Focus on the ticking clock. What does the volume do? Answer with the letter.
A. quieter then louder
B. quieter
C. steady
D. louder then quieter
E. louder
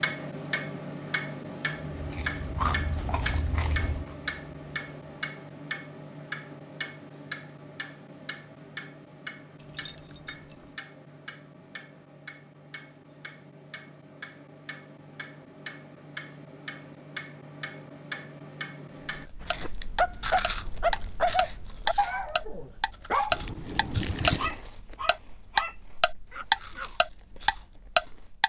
A.